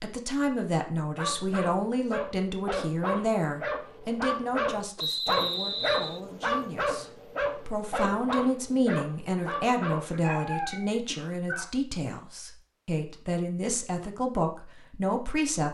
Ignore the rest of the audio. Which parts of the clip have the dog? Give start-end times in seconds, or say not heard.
1.1-11.7.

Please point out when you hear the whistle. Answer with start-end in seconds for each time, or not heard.
5.0-6.2.